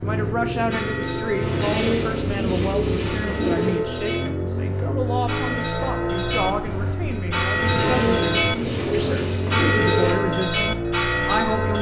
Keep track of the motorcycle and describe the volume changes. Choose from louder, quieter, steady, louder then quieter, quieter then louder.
steady.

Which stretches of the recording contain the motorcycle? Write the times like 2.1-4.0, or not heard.
0.0-11.7.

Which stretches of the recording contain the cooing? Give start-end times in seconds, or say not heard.
1.4-3.8, 7.5-10.2.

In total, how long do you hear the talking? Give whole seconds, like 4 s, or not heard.
12 s.